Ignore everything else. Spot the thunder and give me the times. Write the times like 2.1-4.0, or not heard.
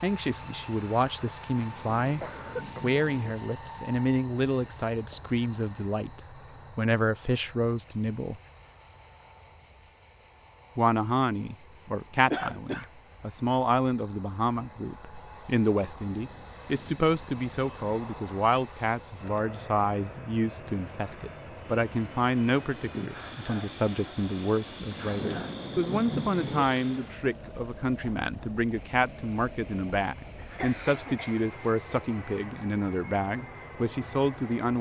1.6-3.4, 24.9-26.6.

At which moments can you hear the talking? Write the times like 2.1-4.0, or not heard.
0.0-8.4, 10.8-34.7.